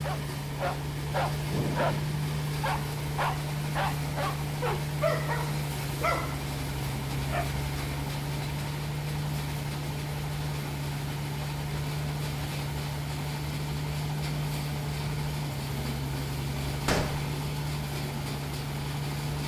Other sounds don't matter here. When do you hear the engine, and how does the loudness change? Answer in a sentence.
The engine can be heard from 0.0 to 19.4 s, at a steady volume.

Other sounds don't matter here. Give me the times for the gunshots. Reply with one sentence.
The gunshots can be heard from 16.9 to 17.3 s.